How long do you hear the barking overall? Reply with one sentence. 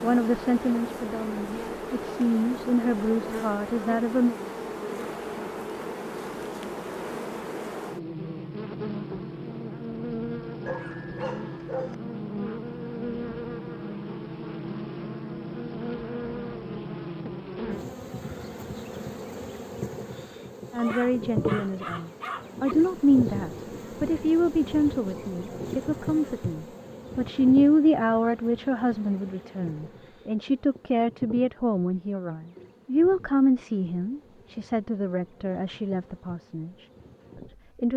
The barking can be heard for 3 seconds in total.